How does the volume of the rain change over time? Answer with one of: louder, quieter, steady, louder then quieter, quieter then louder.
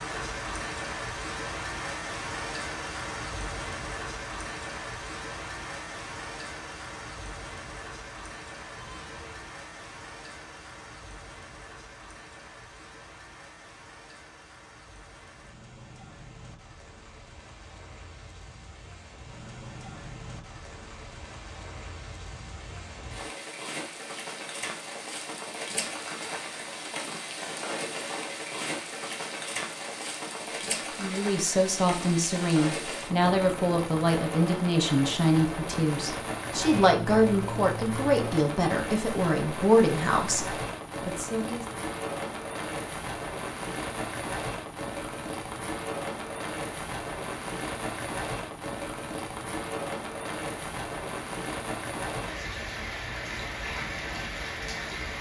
quieter then louder.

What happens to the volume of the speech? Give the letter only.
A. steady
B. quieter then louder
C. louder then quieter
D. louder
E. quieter
A.